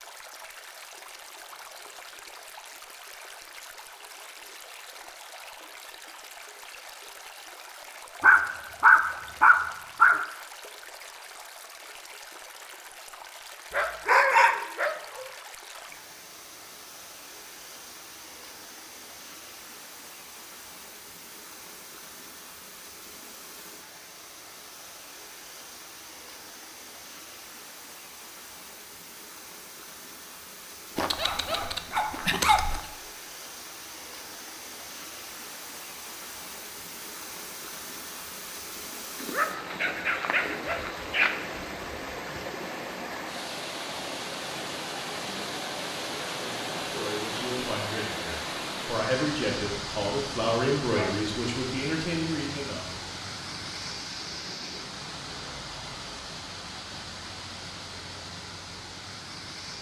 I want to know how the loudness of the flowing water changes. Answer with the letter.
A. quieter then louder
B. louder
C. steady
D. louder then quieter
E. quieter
B.